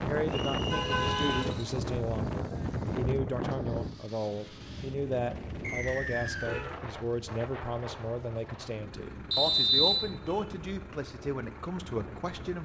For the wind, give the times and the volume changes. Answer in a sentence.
You can hear the wind from 0.0 to 12.6 s, getting quieter.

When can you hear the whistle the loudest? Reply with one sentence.
The loudest moment of the whistle is at 10 seconds.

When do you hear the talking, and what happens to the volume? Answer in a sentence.
You can hear the talking from 0.1 to 12.6 s, at a steady volume.